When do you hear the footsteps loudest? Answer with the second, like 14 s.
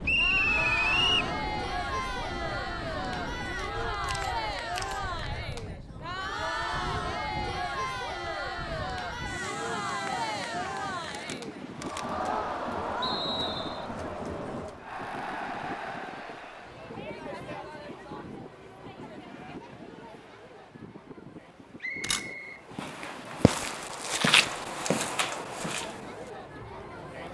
24 s.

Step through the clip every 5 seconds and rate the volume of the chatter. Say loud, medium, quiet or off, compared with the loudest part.
loud, loud, loud, medium, quiet, medium.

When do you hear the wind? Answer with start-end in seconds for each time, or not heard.
0.0-27.2.